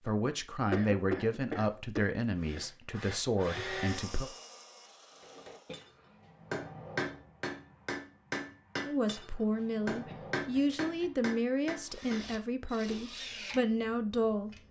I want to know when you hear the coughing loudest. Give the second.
1 s.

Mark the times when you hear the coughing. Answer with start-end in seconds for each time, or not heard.
0.7-2.6, 5.7-6.1, 10.1-11.2.